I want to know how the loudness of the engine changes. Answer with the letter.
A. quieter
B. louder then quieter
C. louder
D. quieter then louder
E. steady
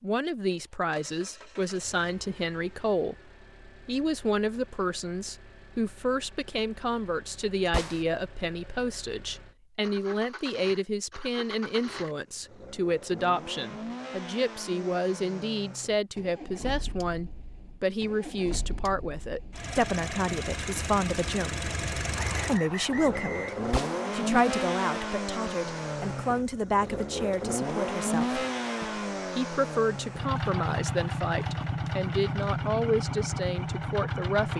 C.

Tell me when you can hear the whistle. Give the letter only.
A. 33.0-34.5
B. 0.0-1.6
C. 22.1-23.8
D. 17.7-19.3
C.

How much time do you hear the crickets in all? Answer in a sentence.
The crickets can't be heard in this clip.